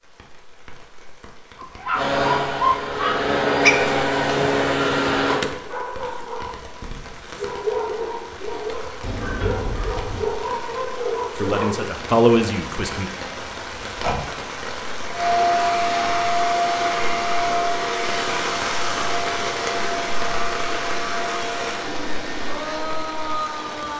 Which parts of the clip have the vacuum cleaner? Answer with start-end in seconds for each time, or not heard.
1.9-5.4, 15.1-23.9.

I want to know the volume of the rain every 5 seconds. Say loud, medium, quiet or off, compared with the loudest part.
quiet, medium, loud, loud, loud.